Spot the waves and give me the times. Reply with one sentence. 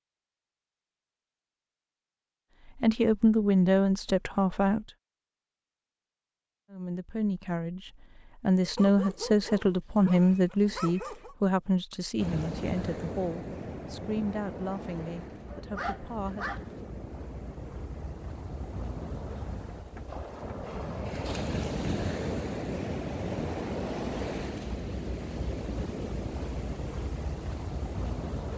The waves can be heard from 12.2 to 28.5 s.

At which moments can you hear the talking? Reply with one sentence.
The talking can be heard from 2.8 to 4.8 s and from 6.7 to 16.4 s.